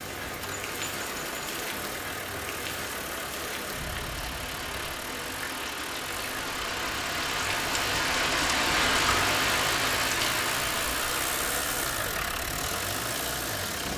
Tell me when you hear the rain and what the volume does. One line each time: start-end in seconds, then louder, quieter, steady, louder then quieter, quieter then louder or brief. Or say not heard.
0.0-13.9 louder then quieter.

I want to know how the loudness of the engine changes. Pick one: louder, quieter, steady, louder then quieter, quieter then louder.
louder.